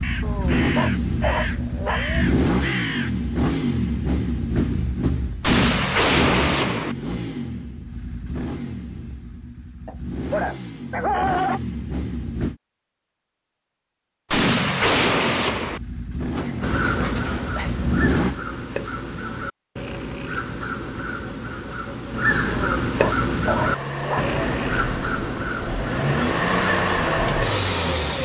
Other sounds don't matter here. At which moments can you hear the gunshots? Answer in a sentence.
The gunshots can be heard from 5.4 to 7.0 s and from 14.3 to 15.8 s.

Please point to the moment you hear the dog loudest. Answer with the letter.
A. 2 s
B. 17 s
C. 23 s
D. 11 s
D.